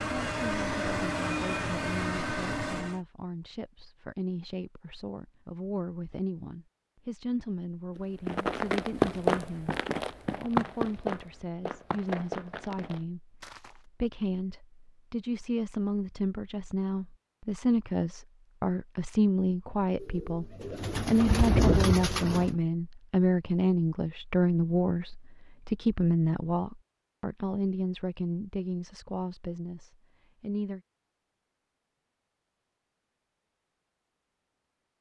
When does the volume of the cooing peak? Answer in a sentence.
The volume of the cooing peaks at 22 seconds.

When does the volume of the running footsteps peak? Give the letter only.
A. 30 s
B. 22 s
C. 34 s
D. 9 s
D.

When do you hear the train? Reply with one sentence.
The train can be heard from 0.0 to 3.0 s.